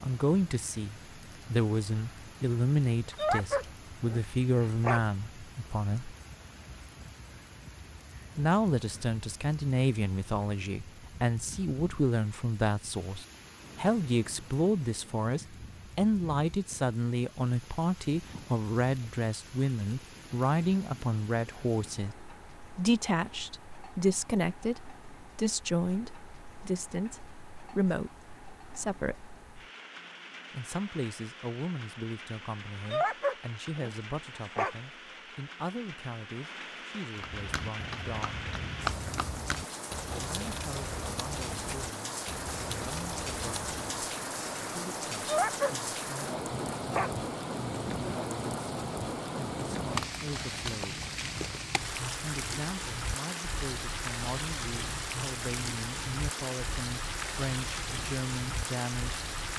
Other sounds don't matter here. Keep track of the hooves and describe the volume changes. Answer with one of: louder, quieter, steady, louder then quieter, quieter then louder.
louder then quieter.